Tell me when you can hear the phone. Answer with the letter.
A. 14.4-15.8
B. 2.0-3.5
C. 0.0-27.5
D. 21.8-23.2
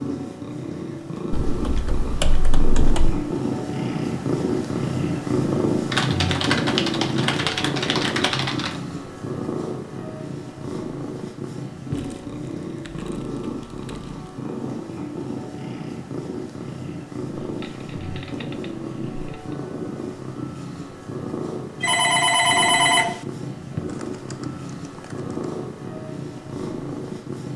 D.